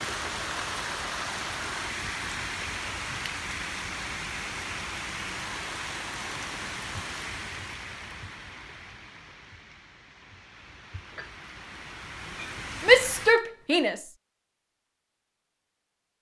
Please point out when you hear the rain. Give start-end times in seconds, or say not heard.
0.0-13.3.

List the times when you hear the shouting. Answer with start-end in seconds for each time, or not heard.
12.8-14.1.